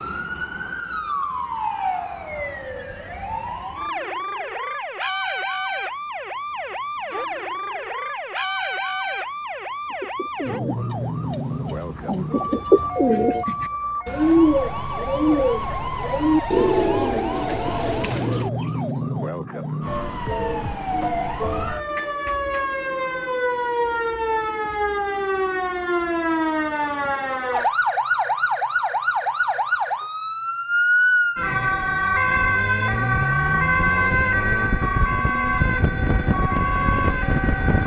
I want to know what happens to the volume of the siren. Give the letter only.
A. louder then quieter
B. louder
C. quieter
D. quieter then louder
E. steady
B.